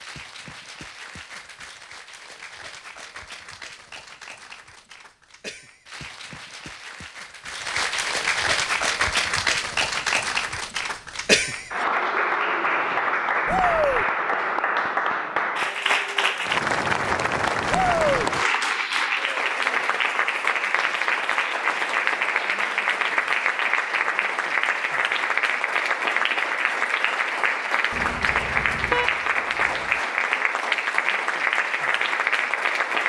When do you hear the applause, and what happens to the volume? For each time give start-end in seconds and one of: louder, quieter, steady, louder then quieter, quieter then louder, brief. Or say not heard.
0.0-33.0 louder.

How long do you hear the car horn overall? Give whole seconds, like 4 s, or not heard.
2 s.